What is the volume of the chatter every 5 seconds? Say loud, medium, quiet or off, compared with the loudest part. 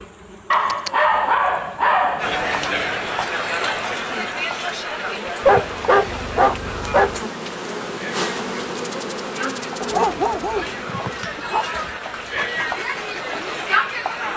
loud, medium, loud.